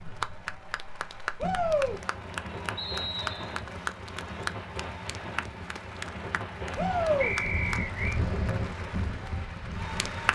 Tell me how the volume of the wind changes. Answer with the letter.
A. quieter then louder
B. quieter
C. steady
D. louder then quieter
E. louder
E.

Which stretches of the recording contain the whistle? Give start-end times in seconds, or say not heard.
2.8-3.6, 7.2-8.2.